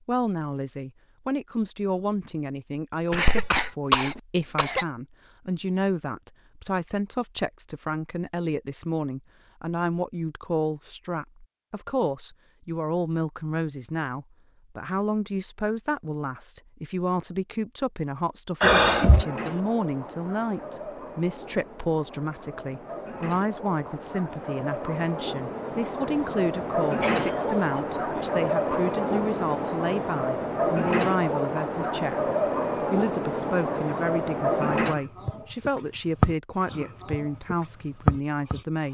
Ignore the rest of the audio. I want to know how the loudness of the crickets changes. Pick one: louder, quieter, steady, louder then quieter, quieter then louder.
louder.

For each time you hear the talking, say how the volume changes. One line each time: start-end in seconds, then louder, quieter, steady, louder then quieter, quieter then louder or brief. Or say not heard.
0.1-38.8 steady.